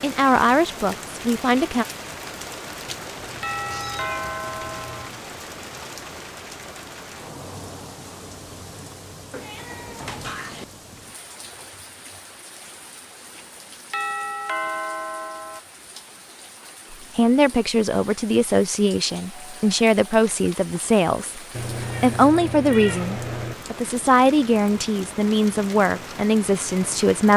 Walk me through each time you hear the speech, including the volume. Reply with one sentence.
You can hear the speech briefly from 0.0 to 1.9 s; and from 16.9 to 27.3 s, at a steady volume.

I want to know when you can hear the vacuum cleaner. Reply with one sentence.
The vacuum cleaner can't be heard in this clip.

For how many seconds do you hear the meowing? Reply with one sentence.
You can hear the meowing for 5 seconds altogether.